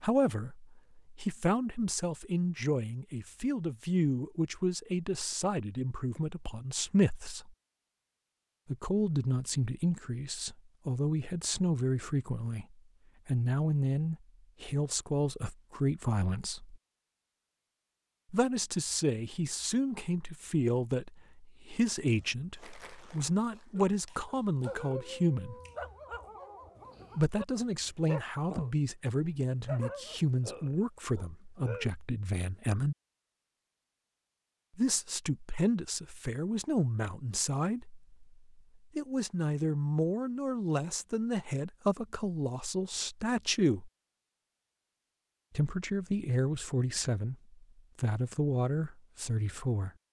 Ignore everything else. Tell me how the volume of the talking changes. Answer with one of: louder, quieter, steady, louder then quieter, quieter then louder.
steady.